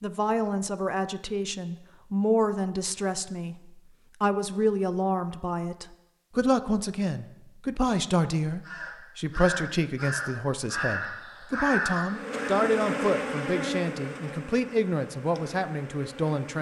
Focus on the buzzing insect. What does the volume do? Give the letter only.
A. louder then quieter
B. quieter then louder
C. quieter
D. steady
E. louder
C.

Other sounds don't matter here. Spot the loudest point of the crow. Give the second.
12 s.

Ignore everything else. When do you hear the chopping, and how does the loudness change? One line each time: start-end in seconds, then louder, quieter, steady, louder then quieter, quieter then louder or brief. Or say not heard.
not heard.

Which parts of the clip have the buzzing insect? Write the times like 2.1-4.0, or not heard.
12.1-16.5.